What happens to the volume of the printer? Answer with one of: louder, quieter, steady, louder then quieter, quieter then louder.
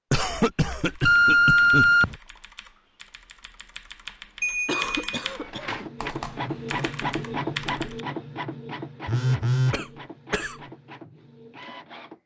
quieter.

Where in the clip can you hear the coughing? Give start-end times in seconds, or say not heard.
0.1-1.9, 4.7-5.8, 9.7-10.6.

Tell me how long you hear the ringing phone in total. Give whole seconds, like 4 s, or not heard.
3 s.